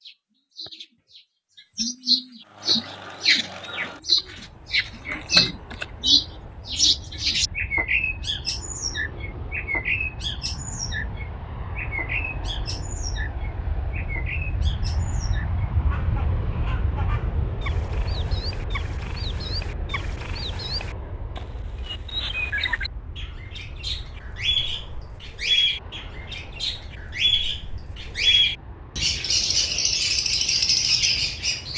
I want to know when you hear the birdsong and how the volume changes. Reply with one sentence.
You can hear the birdsong from 0.0 to 31.7 s, getting quieter then louder.